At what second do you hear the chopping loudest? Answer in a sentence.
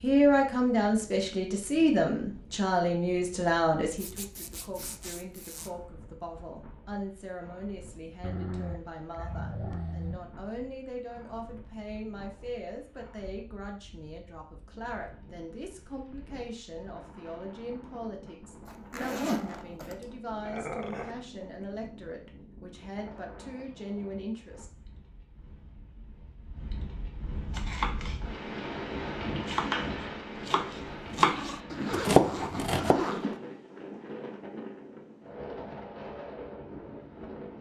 The volume of the chopping peaks at 32 seconds.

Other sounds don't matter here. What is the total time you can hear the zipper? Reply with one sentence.
You can hear the zipper for 5 seconds altogether.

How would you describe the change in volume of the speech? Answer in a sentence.
The loudness of the speech goes down.